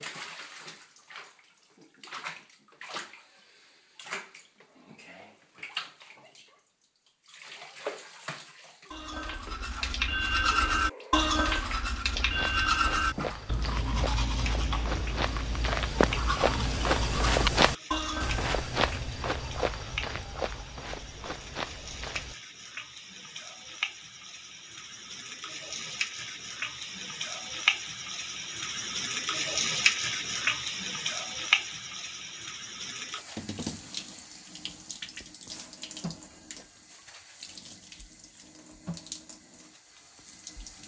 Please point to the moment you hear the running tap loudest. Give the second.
30 s.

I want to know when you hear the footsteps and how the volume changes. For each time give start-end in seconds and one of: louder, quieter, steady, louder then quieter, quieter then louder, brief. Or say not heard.
12.2-22.4 louder then quieter.